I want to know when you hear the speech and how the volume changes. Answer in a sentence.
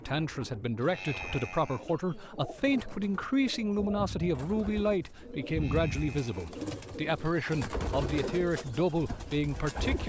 You can hear the speech from 0.0 to 10.0 s, at a steady volume.